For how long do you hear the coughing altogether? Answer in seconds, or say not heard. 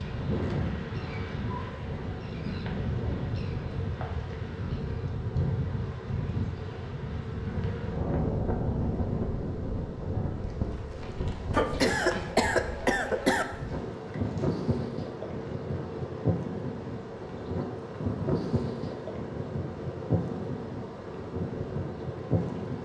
2 s.